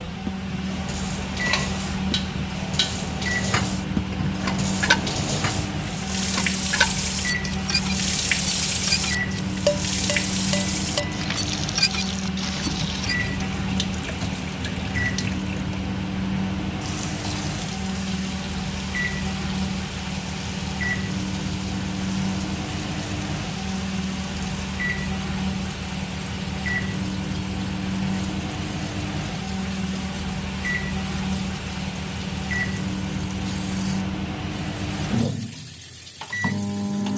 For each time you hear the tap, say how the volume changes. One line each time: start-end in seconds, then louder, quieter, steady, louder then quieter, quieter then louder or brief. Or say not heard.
0.1-37.1 quieter.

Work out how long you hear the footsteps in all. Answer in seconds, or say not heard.
not heard.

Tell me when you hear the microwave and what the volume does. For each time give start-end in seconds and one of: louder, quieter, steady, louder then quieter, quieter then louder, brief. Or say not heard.
0.0-37.1 steady.